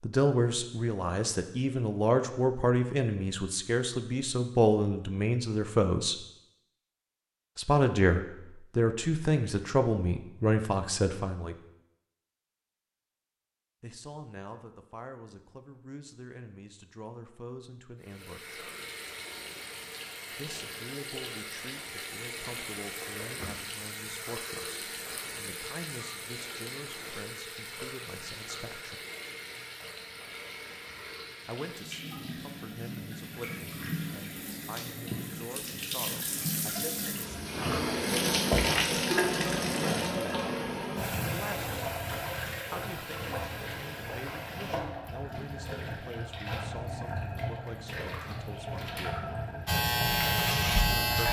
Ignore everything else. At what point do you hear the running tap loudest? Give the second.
39 s.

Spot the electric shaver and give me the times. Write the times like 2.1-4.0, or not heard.
49.6-51.2.